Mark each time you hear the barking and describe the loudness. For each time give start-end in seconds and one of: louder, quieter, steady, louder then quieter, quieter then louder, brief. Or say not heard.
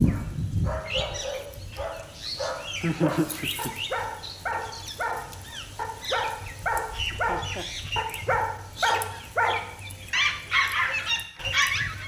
0.0-12.0 louder.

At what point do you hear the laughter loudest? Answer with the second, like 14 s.
3 s.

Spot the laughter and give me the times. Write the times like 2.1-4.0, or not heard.
2.8-3.8, 7.1-7.7.